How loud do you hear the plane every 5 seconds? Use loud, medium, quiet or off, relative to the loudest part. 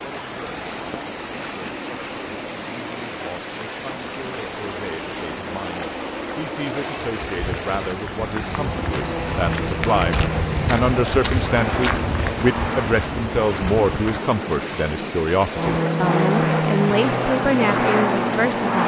quiet, medium, medium, loud.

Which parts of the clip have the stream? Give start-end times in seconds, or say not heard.
0.0-18.8.